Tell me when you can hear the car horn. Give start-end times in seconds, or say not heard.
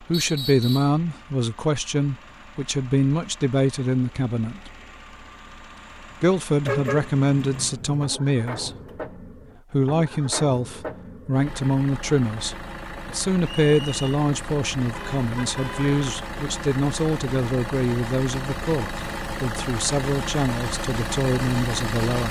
6.7-8.1, 14.9-16.1.